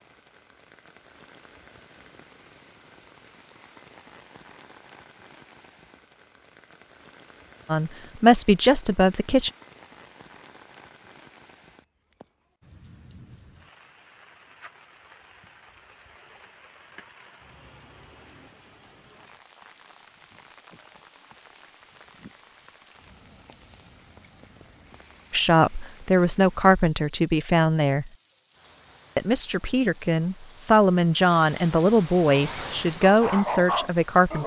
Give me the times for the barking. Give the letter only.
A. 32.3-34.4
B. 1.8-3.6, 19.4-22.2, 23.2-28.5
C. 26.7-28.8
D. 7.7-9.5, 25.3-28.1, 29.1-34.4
A.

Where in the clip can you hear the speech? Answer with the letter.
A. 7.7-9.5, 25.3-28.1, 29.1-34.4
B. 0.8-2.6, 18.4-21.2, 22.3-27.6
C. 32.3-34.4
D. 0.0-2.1
A.